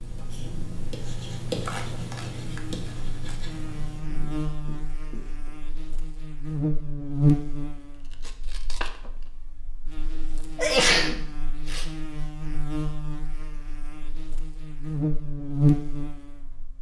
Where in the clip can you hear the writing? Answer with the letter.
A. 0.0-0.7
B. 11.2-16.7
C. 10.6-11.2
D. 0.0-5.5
D.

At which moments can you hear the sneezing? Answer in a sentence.
The sneezing can be heard from 10.6 to 11.2 s.